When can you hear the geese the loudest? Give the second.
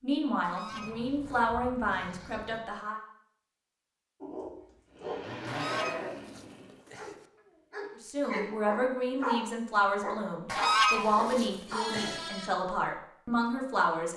11 s.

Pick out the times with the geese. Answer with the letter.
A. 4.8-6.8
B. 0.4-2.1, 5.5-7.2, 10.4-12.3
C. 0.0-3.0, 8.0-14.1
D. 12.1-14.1
B.